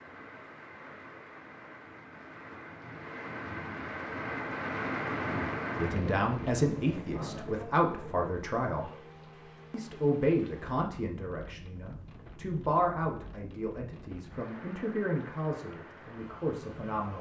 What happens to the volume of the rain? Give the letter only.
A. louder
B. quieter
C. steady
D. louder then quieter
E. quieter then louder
D.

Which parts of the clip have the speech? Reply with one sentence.
You can hear the speech from 5.8 to 8.9 s and from 9.7 to 17.1 s.